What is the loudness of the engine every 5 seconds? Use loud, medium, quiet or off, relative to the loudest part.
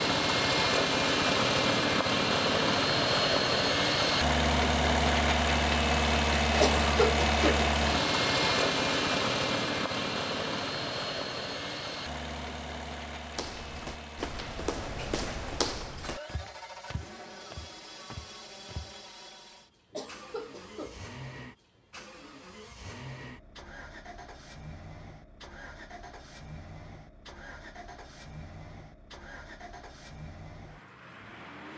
loud, loud, medium, quiet, quiet, quiet, quiet.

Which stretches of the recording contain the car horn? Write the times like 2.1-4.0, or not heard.
not heard.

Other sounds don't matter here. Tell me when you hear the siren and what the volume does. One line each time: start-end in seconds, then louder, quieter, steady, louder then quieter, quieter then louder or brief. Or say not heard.
not heard.